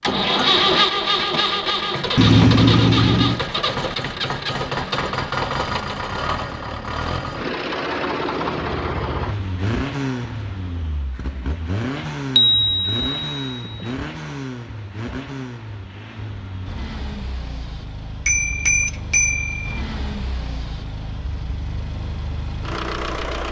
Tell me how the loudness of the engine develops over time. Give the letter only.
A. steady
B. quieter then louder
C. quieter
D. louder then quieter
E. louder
C.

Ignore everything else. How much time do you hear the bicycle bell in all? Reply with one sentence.
You can hear the bicycle bell for 4 seconds altogether.